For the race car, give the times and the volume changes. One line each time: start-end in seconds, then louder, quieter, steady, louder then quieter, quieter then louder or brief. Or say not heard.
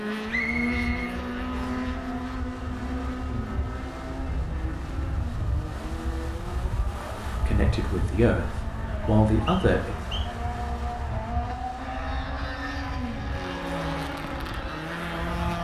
0.0-15.5 quieter then louder.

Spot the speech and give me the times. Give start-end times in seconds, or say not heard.
7.2-9.9.